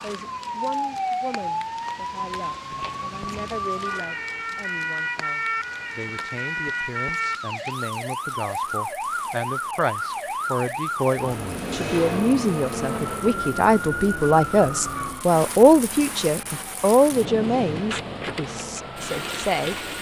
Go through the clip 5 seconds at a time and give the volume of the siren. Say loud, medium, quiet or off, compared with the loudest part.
loud, loud, loud, medium.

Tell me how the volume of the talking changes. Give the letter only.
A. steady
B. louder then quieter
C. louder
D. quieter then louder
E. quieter
C.